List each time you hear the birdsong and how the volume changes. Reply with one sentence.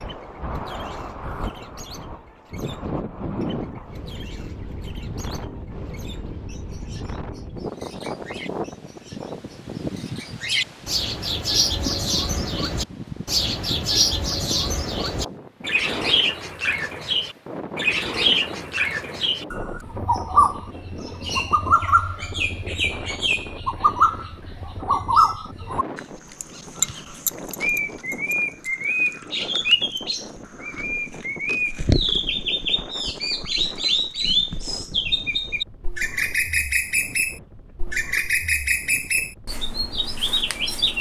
You can hear the birdsong from 0.0 to 40.9 s, getting louder.